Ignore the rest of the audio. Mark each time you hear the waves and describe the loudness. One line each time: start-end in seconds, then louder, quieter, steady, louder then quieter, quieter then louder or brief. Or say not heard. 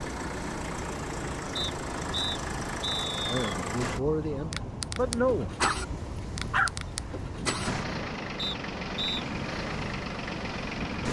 0.0-11.0 steady.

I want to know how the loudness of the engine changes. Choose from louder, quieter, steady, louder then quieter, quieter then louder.
steady.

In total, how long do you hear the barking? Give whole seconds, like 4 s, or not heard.
2 s.